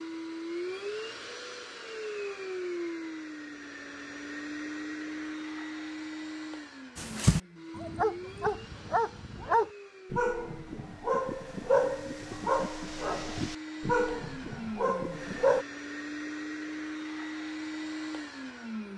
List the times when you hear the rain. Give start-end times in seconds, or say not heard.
not heard.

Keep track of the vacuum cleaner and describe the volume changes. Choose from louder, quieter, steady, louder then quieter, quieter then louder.
quieter then louder.